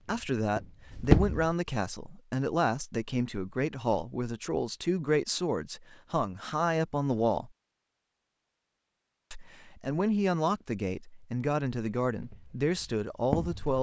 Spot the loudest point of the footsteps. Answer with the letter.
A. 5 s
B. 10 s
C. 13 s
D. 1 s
D.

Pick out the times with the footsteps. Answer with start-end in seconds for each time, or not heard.
0.0-1.6, 12.1-13.7.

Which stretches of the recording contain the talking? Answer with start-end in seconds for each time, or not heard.
0.0-7.5, 9.3-13.7.